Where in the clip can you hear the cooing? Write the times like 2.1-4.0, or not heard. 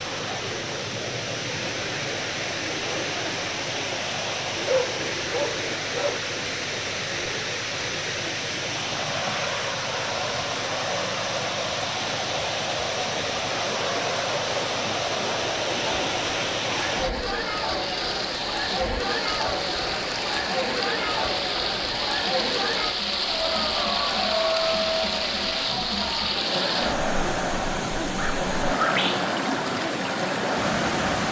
not heard.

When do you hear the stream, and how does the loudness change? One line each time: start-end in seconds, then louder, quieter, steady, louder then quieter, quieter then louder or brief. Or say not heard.
0.0-31.2 steady.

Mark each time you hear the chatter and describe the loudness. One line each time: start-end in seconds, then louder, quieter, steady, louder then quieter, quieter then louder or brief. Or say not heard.
0.0-31.2 louder.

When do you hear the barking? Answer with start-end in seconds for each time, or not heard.
4.7-6.2, 28.1-28.9.